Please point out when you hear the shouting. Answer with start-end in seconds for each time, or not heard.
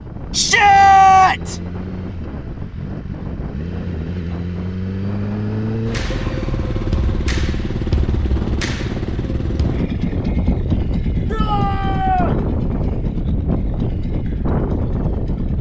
0.3-1.6, 11.3-12.3.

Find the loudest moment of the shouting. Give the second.
1 s.